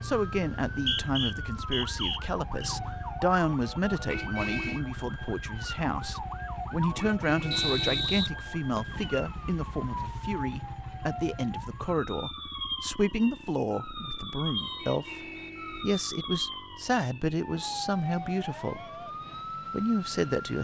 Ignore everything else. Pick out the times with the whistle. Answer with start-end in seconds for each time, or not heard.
0.7-2.7, 7.5-9.0, 14.6-15.5.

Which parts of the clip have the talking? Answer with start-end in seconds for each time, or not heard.
0.0-15.2, 15.8-18.9, 19.7-20.5.